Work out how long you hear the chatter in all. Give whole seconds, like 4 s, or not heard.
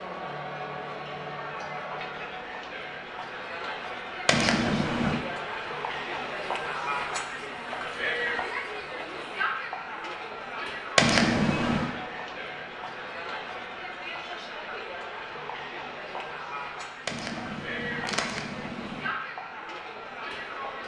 21 s.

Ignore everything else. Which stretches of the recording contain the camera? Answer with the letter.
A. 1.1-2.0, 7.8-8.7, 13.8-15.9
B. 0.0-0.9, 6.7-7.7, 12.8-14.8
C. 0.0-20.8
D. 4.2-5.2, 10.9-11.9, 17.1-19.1
D.